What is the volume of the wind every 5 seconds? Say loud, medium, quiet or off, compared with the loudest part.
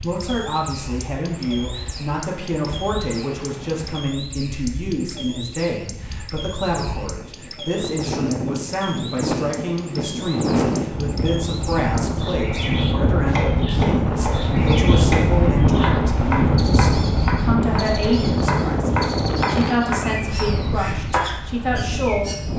quiet, medium, loud, loud, medium.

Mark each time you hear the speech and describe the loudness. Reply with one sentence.
The speech can be heard from 0.0 to 22.3 s, at a steady volume.